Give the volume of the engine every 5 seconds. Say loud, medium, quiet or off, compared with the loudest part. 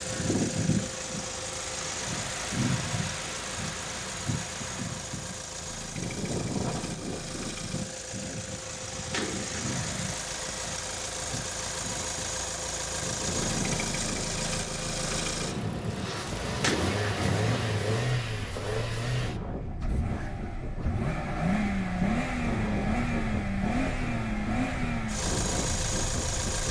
medium, medium, loud, loud, loud, loud.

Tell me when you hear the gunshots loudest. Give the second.
17 s.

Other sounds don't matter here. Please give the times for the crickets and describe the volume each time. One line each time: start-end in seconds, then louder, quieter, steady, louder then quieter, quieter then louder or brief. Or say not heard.
not heard.